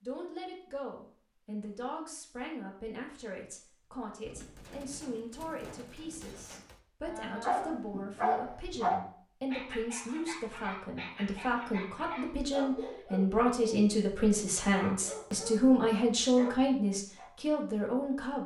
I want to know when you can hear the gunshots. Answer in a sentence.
The gunshots can be heard from 4.2 to 6.8 s.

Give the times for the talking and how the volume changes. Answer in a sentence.
The talking can be heard from 0.0 to 18.4 s, getting louder.